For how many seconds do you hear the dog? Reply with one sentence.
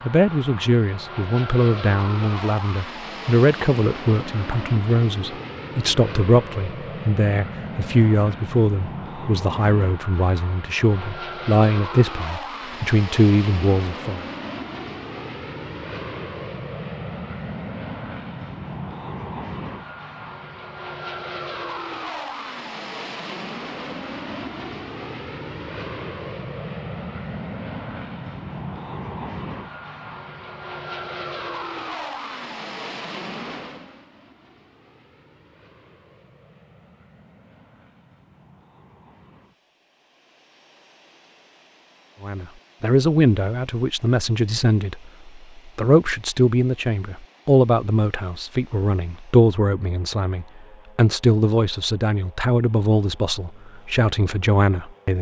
The dog can't be heard in this clip.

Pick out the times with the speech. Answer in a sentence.
You can hear the speech from 0.0 to 14.2 s and from 42.2 to 55.1 s.